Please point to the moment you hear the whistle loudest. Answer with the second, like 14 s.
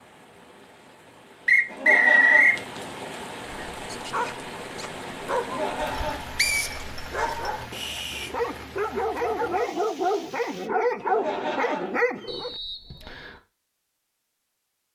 2 s.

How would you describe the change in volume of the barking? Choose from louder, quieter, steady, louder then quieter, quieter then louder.
louder.